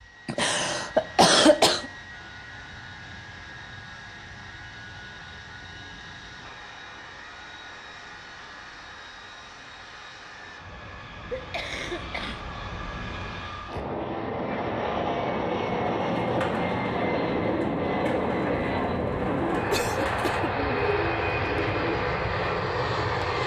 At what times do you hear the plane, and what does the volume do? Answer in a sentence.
You can hear the plane from 0.0 to 23.4 s, getting louder.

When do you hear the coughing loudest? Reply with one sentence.
The volume of the coughing peaks at 1 second.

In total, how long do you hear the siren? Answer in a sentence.
You can't hear the siren here.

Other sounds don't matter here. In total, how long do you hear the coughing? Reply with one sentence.
You can hear the coughing for 4 seconds altogether.